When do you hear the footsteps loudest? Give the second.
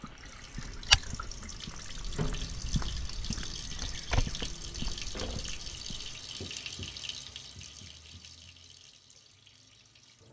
1 s.